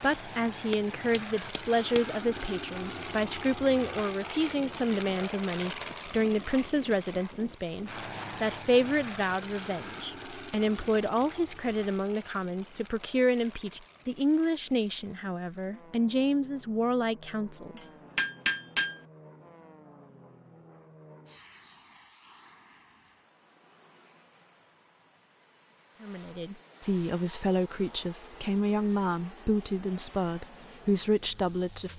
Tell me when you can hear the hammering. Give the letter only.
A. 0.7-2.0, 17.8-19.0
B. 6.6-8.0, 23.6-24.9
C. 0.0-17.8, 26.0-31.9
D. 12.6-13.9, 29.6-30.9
A.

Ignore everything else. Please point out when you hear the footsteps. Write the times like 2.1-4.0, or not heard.
not heard.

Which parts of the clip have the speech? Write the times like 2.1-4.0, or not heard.
0.0-17.8, 26.0-31.9.